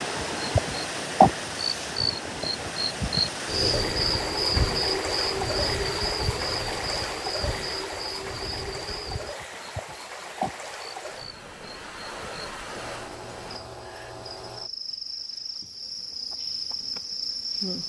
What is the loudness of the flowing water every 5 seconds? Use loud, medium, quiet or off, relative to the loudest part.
loud, loud, medium, off.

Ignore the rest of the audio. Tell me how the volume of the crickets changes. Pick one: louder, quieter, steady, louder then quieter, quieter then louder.
quieter then louder.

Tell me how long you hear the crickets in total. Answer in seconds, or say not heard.
18 s.